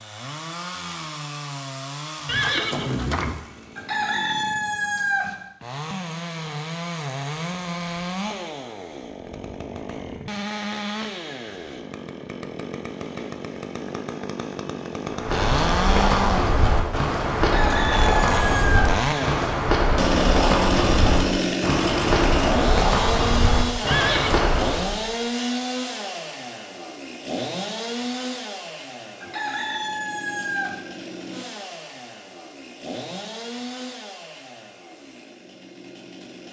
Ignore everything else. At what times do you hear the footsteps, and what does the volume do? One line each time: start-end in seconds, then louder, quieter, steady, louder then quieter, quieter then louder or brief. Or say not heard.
15.1-25.0 steady.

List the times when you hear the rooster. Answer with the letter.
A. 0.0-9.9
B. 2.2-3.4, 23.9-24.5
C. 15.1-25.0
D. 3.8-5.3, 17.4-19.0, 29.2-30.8
D.